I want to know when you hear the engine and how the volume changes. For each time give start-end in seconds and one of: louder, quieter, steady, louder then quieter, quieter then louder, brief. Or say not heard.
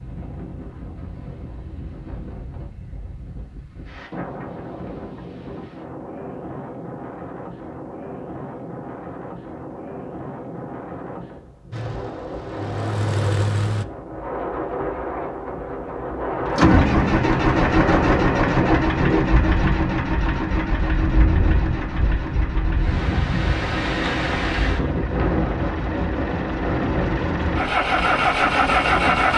11.7-13.8 brief
16.4-29.3 quieter then louder.